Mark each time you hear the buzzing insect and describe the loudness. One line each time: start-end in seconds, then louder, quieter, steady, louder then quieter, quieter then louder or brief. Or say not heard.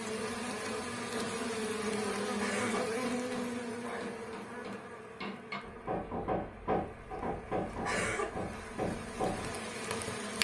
0.0-10.4 quieter then louder.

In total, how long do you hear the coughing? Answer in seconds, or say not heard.
2 s.